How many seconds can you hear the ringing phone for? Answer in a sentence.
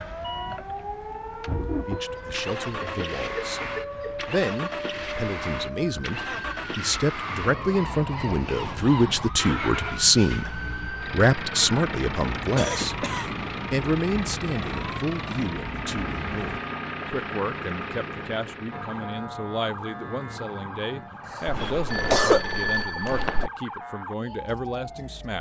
You can hear the ringing phone for 2 seconds altogether.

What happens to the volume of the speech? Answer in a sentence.
The loudness of the speech goes up, then down.